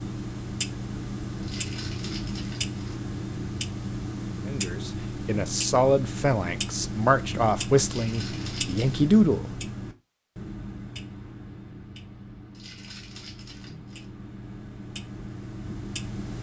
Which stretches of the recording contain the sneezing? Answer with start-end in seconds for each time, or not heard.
not heard.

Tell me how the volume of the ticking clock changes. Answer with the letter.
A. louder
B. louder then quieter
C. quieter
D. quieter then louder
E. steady
C.